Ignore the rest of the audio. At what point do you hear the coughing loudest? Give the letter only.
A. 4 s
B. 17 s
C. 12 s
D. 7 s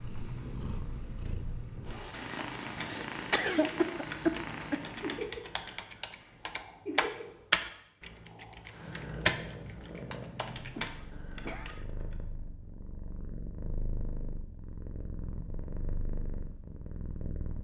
A.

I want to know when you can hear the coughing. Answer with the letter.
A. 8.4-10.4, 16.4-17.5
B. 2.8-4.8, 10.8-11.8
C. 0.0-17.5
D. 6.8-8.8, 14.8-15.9
B.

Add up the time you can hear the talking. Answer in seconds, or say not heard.
not heard.